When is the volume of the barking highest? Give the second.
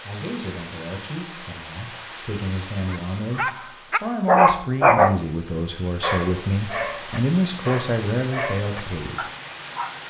5 s.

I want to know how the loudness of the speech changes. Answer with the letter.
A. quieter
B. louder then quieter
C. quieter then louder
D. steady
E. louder
E.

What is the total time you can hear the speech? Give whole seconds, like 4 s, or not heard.
9 s.